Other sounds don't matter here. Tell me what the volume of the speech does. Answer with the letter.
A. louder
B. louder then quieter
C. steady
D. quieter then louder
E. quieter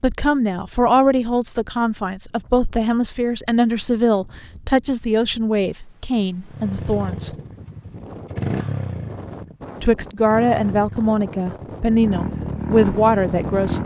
C.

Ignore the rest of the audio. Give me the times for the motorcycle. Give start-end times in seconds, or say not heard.
6.5-13.8.